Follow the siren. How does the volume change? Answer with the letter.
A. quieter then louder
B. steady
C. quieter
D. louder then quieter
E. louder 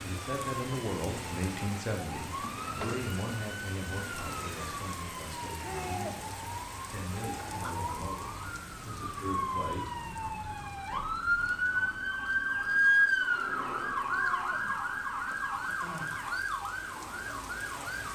D.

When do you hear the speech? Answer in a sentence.
You can hear the speech from 0.0 to 9.9 s.